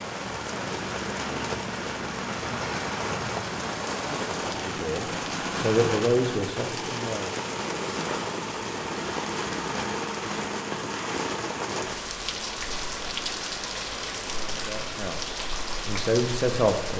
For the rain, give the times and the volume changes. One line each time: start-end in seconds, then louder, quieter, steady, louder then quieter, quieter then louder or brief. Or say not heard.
0.0-16.9 steady.